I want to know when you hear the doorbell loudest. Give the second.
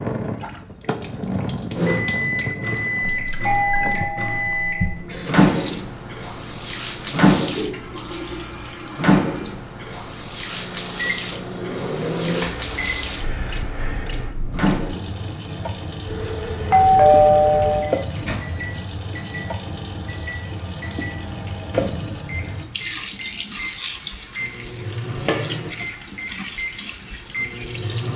17 s.